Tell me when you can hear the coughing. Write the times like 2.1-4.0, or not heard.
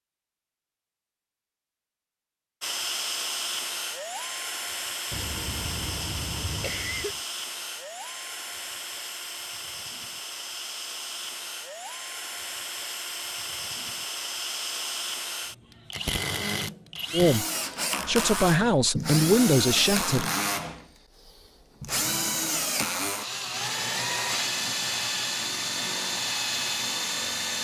5.1-7.2.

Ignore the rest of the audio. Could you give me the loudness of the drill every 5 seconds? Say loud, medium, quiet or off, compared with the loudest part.
loud, medium, medium, loud, loud, loud.